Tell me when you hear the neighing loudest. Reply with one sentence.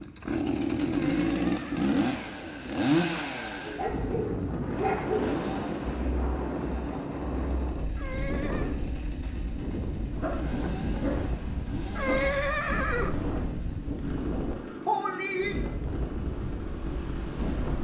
The loudest moment of the neighing is at 12 seconds.